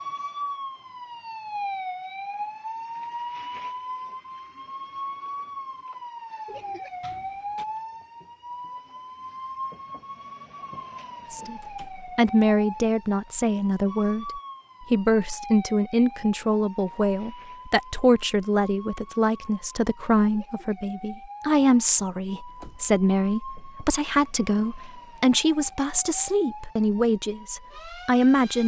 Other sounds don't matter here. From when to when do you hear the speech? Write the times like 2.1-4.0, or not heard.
11.3-28.6.